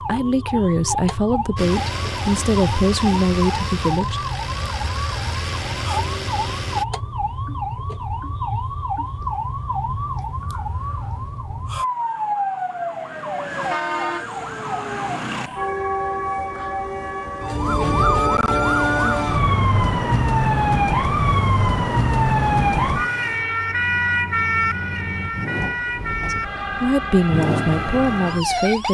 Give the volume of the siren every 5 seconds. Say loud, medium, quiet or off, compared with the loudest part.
medium, medium, medium, loud, loud, medium.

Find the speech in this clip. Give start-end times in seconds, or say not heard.
0.0-4.2, 26.3-28.8.